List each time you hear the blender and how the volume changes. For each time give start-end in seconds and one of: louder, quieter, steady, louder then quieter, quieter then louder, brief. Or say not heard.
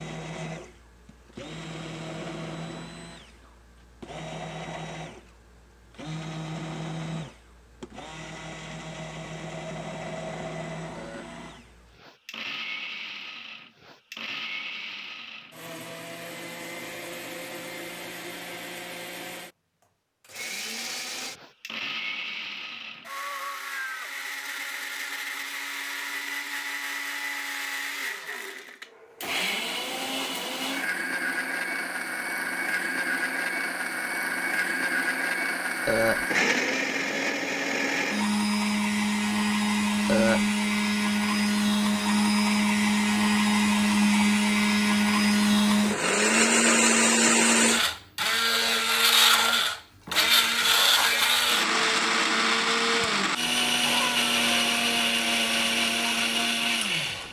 0.0-57.2 louder.